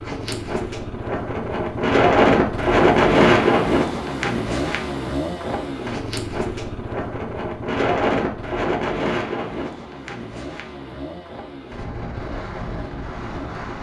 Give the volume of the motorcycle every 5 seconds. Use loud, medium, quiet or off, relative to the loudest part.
loud, loud, medium.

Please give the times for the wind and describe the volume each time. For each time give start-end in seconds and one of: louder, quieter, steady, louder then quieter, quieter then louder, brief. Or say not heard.
0.0-13.7 quieter.